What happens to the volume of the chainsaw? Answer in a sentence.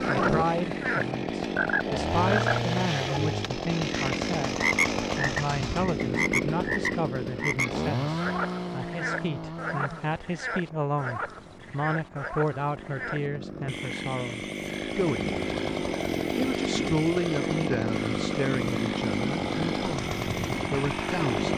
The loudness of the chainsaw goes down, then up.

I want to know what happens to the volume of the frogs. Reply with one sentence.
The loudness of the frogs goes down.